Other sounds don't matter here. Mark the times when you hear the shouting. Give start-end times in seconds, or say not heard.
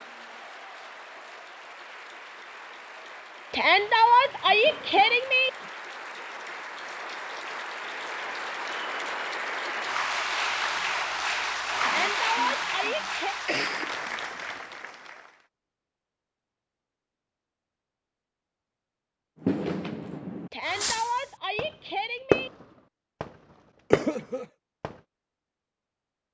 3.5-5.5, 11.8-13.3, 20.5-22.5.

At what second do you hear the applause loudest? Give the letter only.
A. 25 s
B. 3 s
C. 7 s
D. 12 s
D.